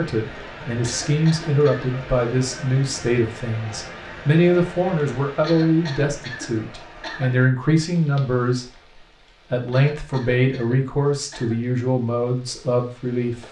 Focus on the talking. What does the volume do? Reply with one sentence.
The loudness of the talking stays about the same.